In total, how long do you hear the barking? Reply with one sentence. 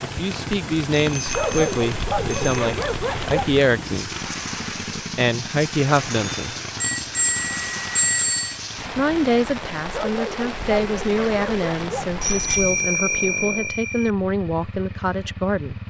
You can hear the barking for 5 seconds altogether.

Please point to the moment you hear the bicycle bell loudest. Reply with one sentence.
The loudest moment of the bicycle bell is at 8 seconds.